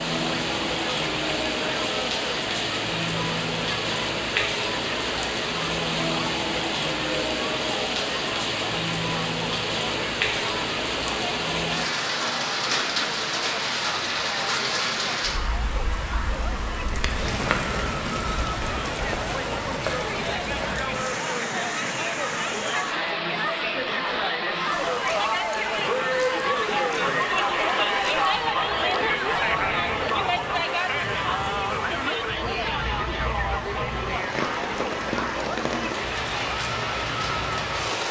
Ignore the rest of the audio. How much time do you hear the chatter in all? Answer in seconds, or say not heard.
38 s.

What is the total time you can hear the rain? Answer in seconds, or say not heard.
38 s.